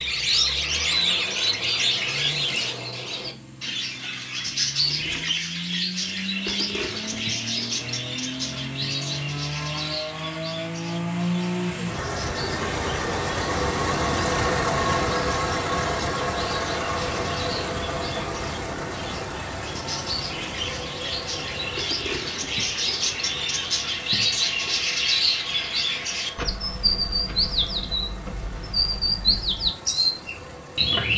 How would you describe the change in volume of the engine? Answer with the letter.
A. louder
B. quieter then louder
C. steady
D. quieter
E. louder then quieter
E.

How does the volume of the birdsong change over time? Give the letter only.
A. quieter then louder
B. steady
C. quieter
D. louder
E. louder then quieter
A.